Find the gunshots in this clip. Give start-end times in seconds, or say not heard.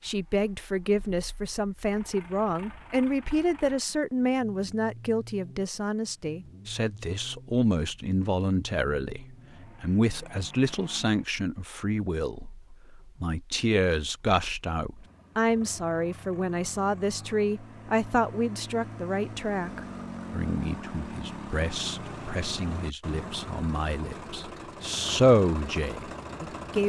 not heard.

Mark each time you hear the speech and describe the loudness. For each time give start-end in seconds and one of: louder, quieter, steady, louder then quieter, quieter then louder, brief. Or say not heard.
0.0-26.8 steady.